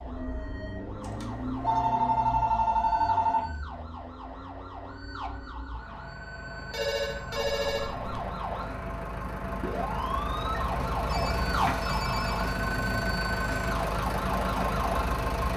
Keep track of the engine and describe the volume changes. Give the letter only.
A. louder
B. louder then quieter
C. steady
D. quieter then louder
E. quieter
D.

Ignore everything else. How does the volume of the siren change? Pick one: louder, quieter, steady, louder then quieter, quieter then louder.
louder.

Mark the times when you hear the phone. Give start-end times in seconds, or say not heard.
1.0-3.5, 6.7-8.2, 11.1-12.5.